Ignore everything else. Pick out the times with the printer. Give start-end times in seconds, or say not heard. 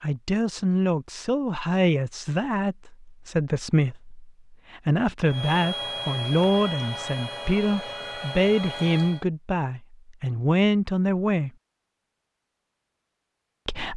5.2-9.2.